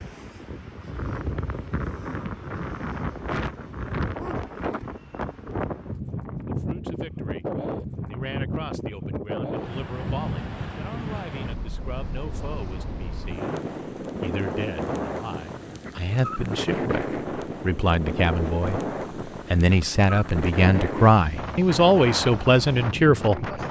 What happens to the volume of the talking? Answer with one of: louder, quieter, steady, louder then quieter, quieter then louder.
louder.